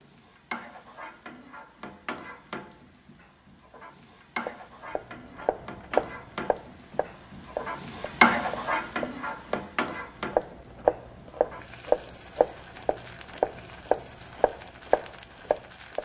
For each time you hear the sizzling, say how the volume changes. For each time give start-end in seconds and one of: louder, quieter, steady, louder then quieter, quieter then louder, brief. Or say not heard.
0.0-16.0 louder then quieter.